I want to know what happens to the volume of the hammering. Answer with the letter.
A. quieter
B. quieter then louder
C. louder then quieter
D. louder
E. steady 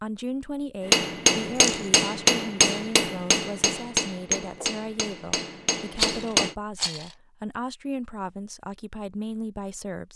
A.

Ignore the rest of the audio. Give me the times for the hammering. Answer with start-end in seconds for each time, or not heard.
0.8-6.5.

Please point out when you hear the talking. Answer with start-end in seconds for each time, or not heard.
0.0-10.1.